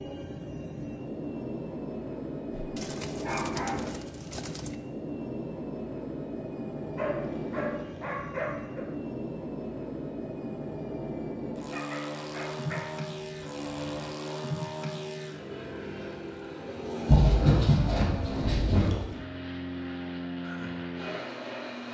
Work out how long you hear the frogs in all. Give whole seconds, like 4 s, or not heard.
not heard.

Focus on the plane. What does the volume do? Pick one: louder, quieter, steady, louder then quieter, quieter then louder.
steady.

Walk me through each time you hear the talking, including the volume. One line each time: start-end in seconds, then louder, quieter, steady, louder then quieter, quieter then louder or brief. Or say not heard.
not heard.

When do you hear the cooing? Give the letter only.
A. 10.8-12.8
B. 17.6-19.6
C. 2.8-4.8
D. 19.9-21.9
C.